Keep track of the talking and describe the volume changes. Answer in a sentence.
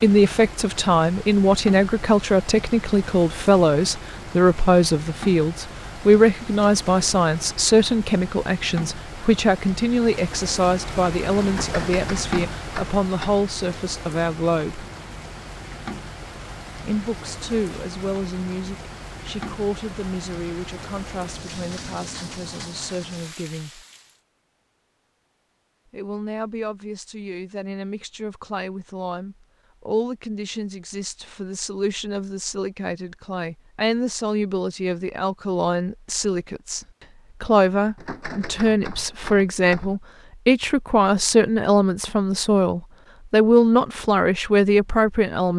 The loudness of the talking goes down, then up.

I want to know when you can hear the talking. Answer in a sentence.
You can hear the talking from 0.0 to 14.8 s, from 16.8 to 23.9 s and from 25.9 to 45.5 s.